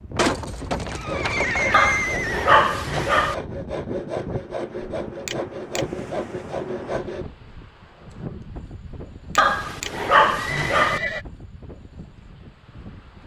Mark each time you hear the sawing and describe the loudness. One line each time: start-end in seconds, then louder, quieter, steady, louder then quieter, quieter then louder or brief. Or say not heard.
1.1-7.2 steady.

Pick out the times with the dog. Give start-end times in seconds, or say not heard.
1.7-3.4, 9.3-11.0.